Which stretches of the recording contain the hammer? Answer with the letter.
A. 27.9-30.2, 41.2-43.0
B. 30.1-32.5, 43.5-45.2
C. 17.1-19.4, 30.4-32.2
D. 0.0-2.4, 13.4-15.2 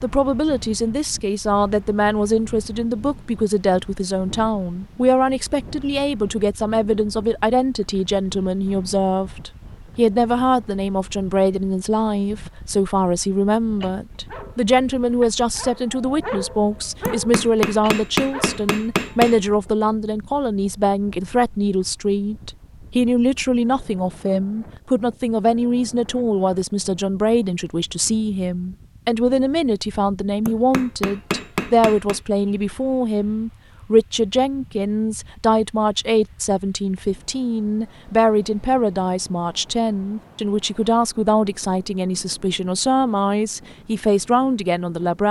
C.